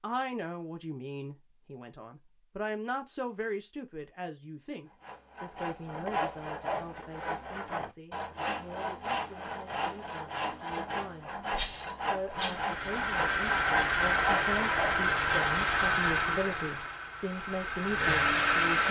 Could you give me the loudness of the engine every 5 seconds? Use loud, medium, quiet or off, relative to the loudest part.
off, off, loud, loud.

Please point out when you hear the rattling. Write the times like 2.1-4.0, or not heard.
11.5-12.6.